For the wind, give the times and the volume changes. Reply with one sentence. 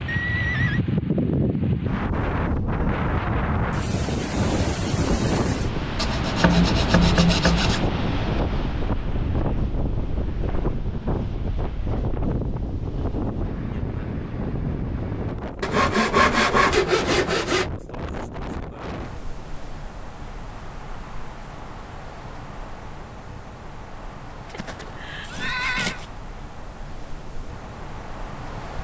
The wind can be heard from 0.0 to 28.7 s, getting quieter.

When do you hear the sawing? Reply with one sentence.
The sawing can be heard from 6.0 to 7.8 s, from 15.6 to 17.7 s and from 24.6 to 26.1 s.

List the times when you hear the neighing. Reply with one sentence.
The neighing can be heard from 0.1 to 0.8 s and from 24.5 to 26.0 s.